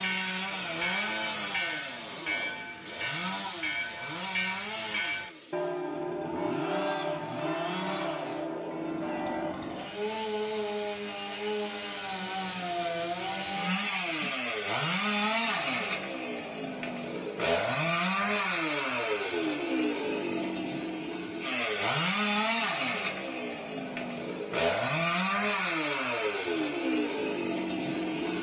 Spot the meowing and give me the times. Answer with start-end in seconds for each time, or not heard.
not heard.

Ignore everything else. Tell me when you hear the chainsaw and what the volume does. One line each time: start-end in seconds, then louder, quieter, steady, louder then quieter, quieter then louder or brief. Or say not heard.
0.0-28.3 louder.